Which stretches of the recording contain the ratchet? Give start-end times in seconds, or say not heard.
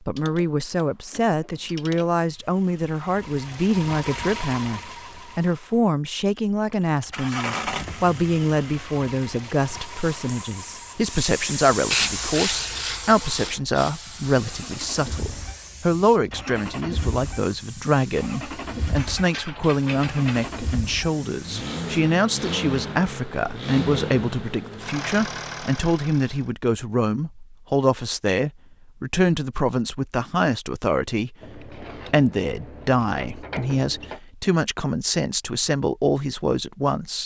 0.1-2.1, 11.9-13.9, 18.9-20.5, 31.4-34.2.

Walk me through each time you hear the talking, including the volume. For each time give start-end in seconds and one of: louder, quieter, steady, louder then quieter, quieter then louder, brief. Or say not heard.
0.1-37.2 steady.